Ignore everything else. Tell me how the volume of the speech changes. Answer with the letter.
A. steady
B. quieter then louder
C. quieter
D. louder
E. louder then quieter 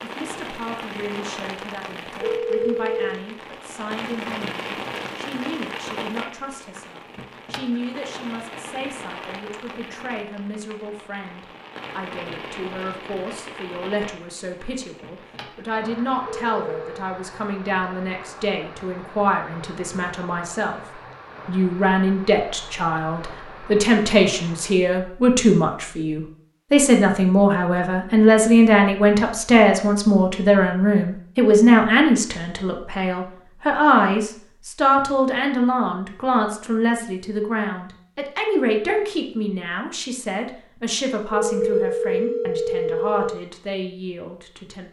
E.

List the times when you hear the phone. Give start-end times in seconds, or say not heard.
2.2-3.1, 16.2-17.1, 41.3-43.3.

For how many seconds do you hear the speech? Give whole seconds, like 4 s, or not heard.
45 s.